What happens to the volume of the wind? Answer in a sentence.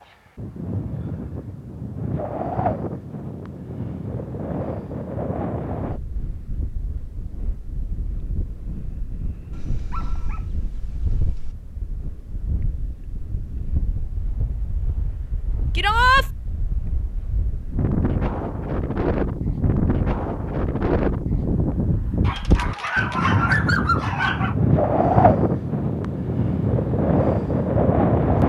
The volume of the wind goes down, then up.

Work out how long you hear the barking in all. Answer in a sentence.
You can hear the barking for 4 seconds altogether.